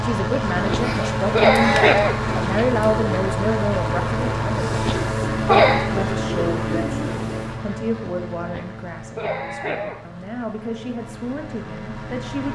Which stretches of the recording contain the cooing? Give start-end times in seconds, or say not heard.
0.7-7.5.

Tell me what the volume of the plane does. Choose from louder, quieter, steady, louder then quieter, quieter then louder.
quieter.